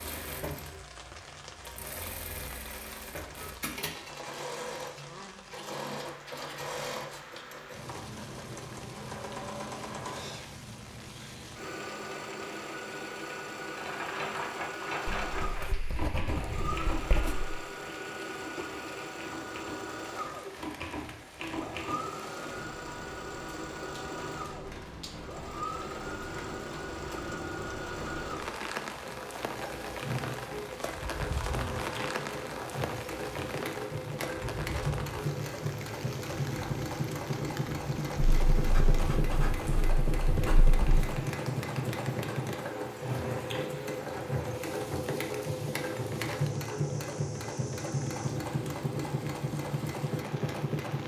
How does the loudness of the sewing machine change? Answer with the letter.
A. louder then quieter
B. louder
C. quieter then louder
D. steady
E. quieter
B.